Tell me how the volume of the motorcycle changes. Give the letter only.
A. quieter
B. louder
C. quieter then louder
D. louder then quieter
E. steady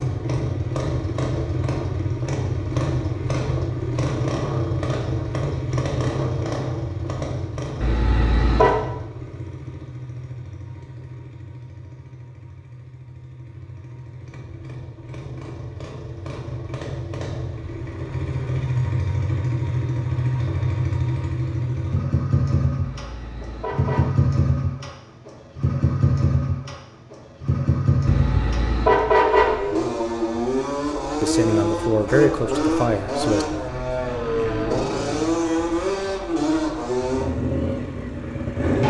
C.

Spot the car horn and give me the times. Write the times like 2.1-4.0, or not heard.
7.8-8.8, 22.8-24.1, 28.1-29.6.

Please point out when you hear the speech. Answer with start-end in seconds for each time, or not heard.
31.2-33.5.